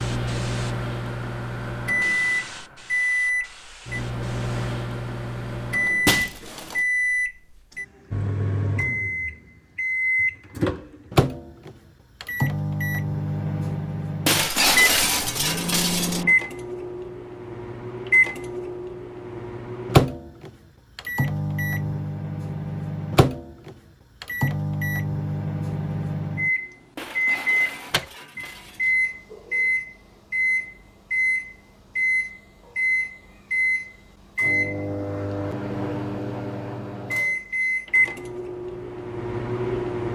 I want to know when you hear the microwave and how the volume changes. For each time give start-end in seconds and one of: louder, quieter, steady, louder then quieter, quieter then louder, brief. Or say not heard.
0.0-40.1 steady.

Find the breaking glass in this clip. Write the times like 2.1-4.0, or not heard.
6.0-6.8, 14.2-16.2, 26.9-28.9.